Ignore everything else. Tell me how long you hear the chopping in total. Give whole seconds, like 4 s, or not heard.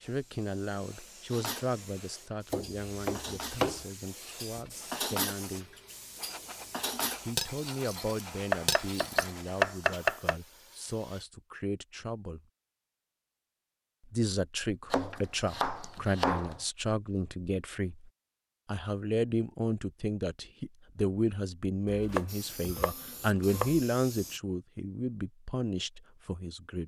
7 s.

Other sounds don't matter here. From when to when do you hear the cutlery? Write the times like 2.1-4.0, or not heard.
1.3-9.3.